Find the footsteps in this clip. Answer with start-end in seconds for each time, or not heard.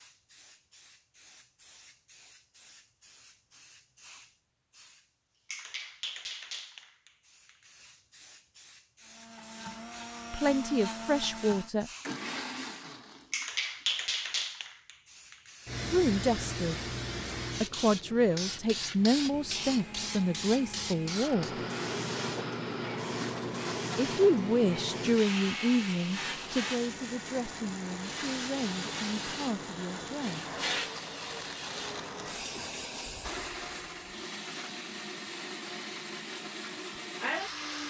not heard.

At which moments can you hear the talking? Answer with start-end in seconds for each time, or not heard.
10.3-11.9, 15.9-16.9, 17.6-21.6, 24.0-30.4.